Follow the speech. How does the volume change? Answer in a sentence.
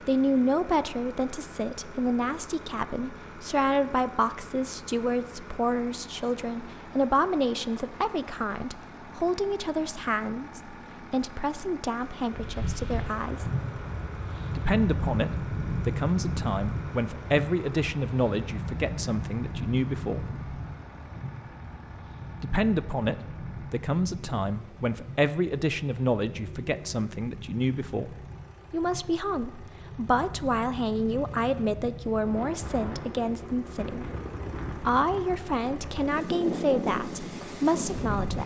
The volume of the speech stays about the same.